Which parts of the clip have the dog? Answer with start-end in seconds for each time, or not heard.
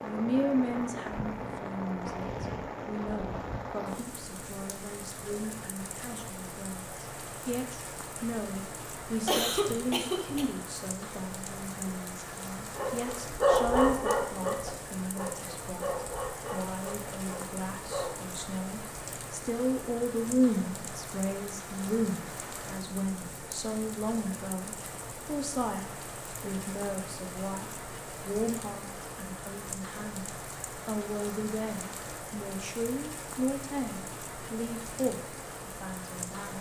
12.7-18.1.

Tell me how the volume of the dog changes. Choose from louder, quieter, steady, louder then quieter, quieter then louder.
quieter.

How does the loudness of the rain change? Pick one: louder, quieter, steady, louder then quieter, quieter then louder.
steady.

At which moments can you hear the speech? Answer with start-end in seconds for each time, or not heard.
0.0-36.5.